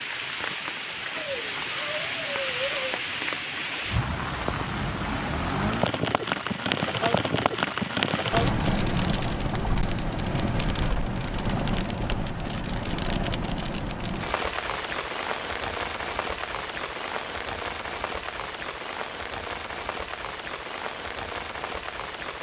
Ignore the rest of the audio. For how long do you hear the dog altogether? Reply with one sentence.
You can hear the dog for 2 seconds altogether.